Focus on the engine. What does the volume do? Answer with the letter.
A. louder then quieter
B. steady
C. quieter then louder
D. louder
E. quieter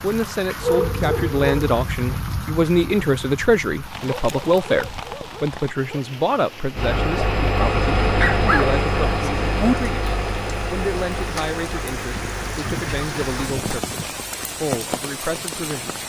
E.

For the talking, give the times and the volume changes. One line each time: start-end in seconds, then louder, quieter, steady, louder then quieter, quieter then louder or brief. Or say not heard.
0.0-16.0 quieter.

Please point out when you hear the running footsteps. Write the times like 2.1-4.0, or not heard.
not heard.